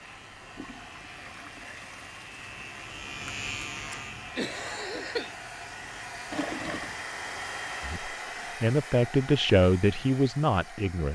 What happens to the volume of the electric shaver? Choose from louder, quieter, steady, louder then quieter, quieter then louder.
louder then quieter.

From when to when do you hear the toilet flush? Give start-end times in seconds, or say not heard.
0.3-2.9, 6.3-7.0.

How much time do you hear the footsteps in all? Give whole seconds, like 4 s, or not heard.
not heard.